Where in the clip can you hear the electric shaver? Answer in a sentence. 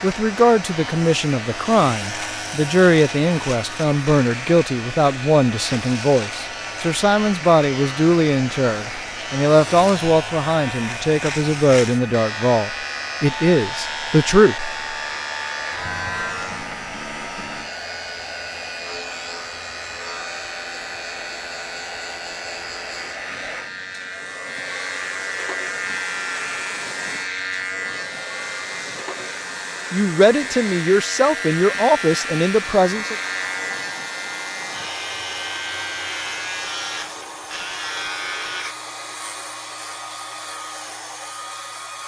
You can hear the electric shaver from 0.0 to 42.0 s.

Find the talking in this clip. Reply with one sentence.
The talking can be heard from 0.0 to 14.8 s and from 29.9 to 33.1 s.